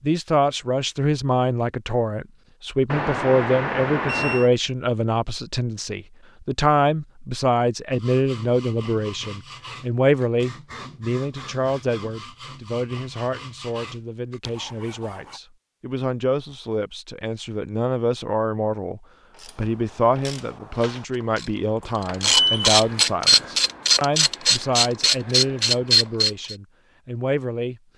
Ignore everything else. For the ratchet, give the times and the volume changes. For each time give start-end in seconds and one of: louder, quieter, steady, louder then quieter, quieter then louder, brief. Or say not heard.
19.3-26.6 louder.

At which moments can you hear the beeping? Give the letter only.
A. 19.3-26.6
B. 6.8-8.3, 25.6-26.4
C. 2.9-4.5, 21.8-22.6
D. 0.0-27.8
C.